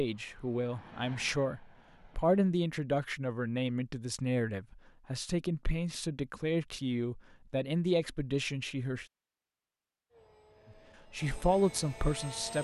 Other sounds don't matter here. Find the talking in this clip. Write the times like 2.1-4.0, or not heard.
0.0-9.1, 11.1-12.5.